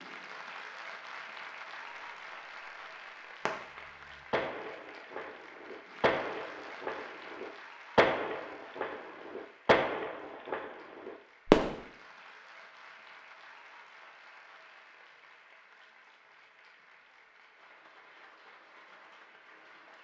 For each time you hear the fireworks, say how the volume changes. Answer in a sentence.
The fireworks can be heard from 3.5 to 11.8 s, getting louder then quieter.